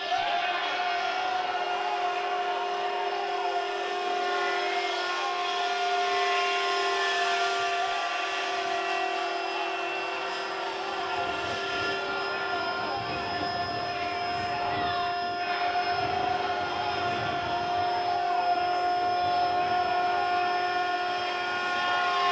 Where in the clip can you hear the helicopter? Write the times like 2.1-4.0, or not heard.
0.0-22.2.